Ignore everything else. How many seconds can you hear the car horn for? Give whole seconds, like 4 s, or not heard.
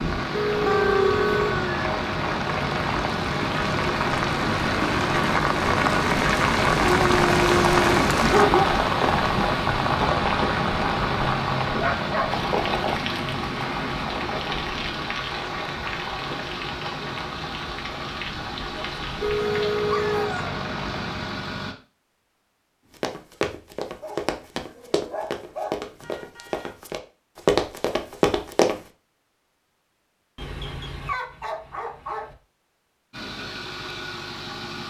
3 s.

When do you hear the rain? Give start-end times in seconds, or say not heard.
0.0-21.5.